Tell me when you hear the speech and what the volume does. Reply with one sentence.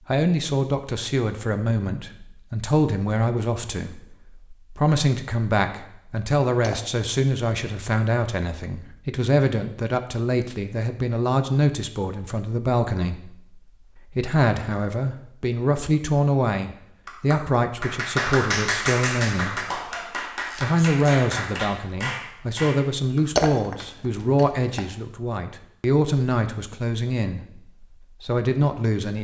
The speech can be heard from 0.1 to 19.8 s, at a steady volume; and from 20.6 to 29.1 s, at a steady volume.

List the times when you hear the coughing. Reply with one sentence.
The coughing can't be heard in this clip.